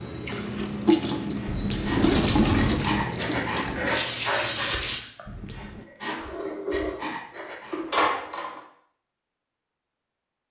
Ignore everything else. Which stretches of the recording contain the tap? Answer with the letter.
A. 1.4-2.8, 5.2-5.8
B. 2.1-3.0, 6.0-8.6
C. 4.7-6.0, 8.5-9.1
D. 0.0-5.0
D.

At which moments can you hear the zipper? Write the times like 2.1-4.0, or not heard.
1.4-2.8, 5.2-5.8.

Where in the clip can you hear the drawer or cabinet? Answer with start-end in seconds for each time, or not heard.
2.1-3.0, 6.0-8.6.